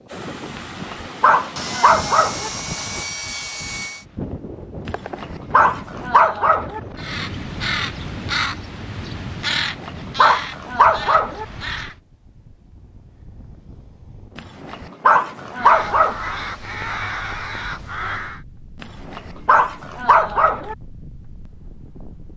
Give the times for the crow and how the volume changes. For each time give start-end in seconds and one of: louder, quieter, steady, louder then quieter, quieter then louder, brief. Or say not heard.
7.0-11.9 quieter
15.6-18.4 brief.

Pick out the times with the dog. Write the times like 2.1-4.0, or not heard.
0.6-2.5, 4.8-6.8, 9.5-11.4, 14.3-16.1, 18.8-20.8.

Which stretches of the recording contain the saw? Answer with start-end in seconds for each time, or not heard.
1.6-4.0.